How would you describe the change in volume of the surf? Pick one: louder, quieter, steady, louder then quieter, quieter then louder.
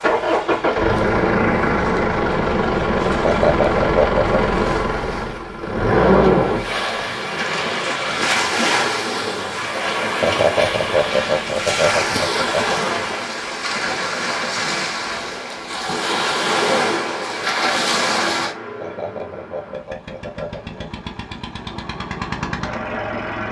louder.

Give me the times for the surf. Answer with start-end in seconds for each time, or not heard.
0.0-18.6.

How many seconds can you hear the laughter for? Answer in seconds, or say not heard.
6 s.